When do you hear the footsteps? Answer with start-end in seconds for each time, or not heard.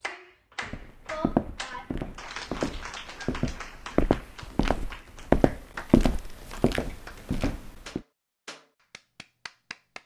0.6-8.0.